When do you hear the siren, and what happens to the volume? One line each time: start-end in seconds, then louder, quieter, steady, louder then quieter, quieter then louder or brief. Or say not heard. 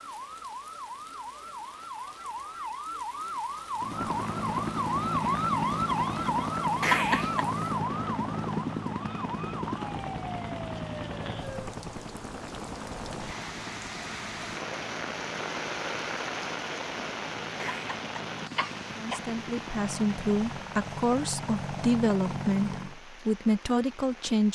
0.0-11.7 louder then quieter.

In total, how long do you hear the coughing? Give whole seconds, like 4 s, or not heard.
2 s.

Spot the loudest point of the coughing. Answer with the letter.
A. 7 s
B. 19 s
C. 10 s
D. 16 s
A.